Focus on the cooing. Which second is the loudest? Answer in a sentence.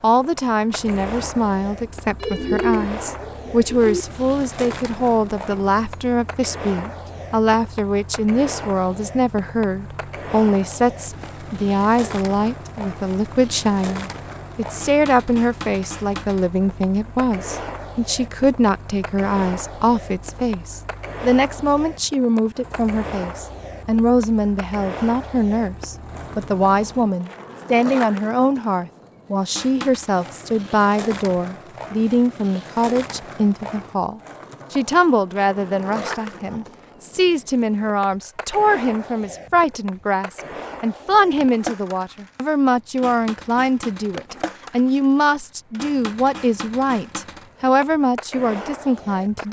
The volume of the cooing peaks at 3 seconds.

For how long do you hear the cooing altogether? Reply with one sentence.
The cooing can be heard for 2 seconds in total.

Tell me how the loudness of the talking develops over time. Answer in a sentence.
The loudness of the talking stays about the same.